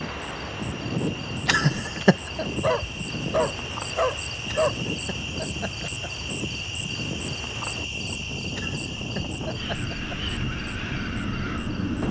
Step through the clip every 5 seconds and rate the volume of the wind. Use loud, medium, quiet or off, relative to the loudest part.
loud, medium, loud.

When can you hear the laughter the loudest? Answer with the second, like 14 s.
2 s.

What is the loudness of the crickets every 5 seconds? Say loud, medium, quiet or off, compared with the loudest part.
loud, loud, medium.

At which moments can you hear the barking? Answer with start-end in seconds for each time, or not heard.
2.5-4.8.